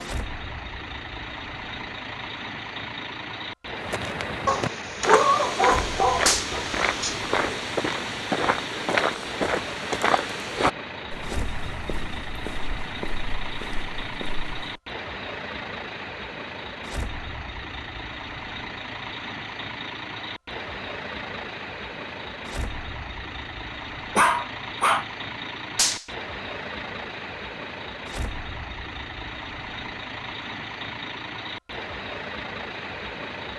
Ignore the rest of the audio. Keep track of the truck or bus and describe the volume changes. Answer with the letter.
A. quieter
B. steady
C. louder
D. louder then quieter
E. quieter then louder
B.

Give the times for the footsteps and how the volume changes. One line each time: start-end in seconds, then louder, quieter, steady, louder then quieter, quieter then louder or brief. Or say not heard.
3.8-14.8 quieter.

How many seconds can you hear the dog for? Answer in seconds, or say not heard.
4 s.